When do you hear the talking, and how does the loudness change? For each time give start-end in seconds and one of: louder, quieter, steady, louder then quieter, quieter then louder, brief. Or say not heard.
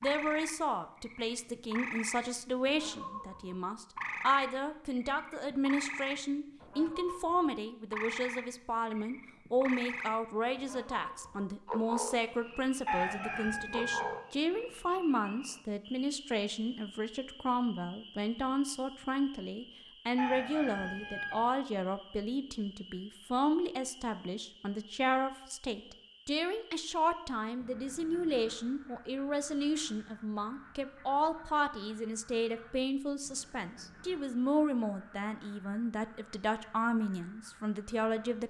0.0-38.4 steady.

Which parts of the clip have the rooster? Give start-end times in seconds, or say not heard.
12.8-14.2, 20.1-21.4.